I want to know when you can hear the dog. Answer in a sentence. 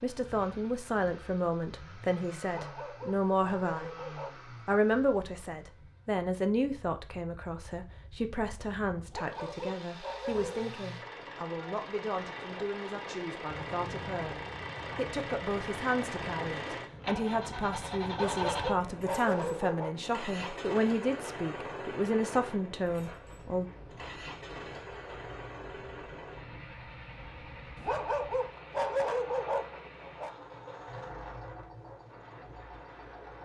The dog can be heard from 2.5 to 4.3 s, from 9.1 to 10.7 s, from 18.1 to 19.9 s and from 27.8 to 30.3 s.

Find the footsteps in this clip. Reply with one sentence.
The footsteps can't be heard in this clip.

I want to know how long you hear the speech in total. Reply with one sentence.
You can hear the speech for 24 seconds altogether.